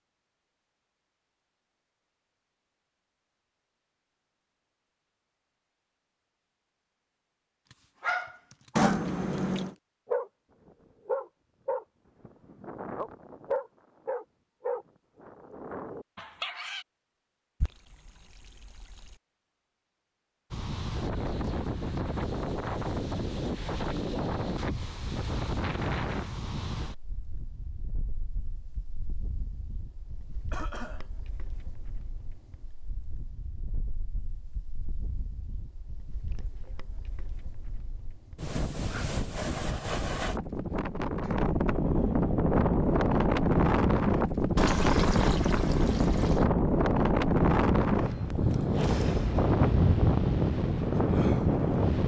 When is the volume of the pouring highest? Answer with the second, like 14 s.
9 s.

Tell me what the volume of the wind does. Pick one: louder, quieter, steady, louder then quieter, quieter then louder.
quieter then louder.